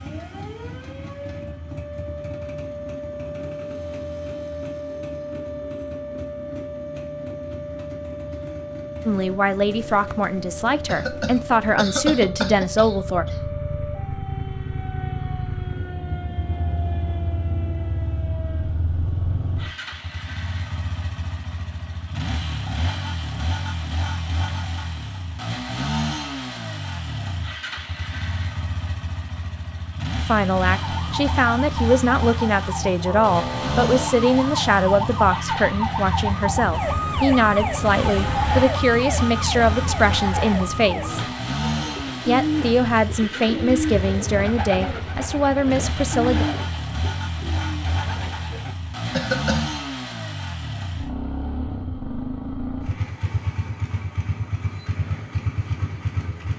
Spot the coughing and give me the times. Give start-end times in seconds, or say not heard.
10.8-13.4, 49.1-49.8.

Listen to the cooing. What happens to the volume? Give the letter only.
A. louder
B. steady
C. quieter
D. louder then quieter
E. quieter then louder
C.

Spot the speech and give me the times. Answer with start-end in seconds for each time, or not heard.
9.1-13.2, 30.2-41.2, 42.2-46.5.